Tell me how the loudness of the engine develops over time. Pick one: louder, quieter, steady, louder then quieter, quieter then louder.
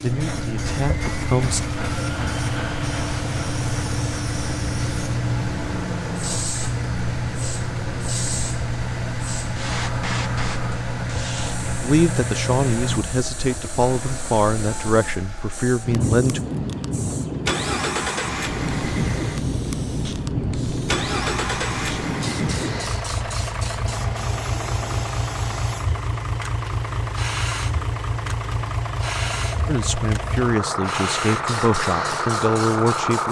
steady.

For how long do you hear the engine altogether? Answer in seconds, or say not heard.
33 s.